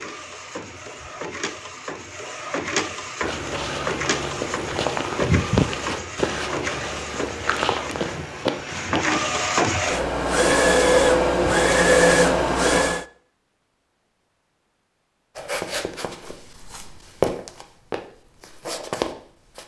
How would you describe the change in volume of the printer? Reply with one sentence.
The loudness of the printer goes up.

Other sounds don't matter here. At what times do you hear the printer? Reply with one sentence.
The printer can be heard from 0.0 to 13.1 s.